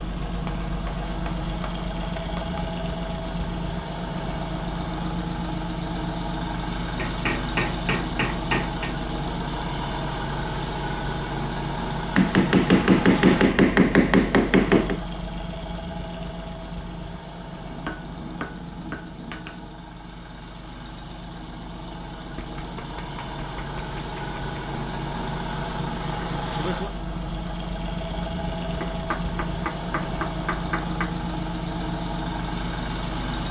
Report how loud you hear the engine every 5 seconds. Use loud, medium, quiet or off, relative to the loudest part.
loud, loud, loud, medium, medium, loud, loud.